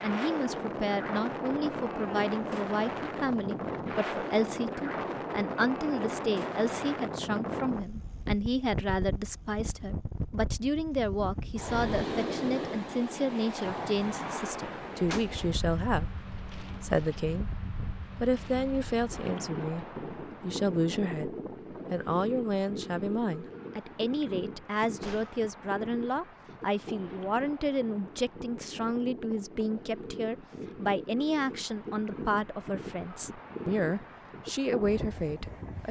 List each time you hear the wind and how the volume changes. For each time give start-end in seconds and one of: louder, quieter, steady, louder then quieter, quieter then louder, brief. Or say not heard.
0.0-35.8 quieter.